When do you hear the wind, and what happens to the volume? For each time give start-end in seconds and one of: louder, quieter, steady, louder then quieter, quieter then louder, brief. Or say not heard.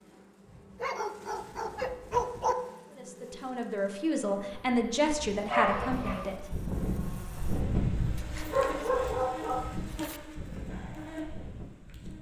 4.7-12.1 louder then quieter.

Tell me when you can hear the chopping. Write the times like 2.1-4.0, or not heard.
not heard.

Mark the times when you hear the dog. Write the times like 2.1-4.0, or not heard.
0.8-2.5, 5.5-6.3, 8.2-10.2.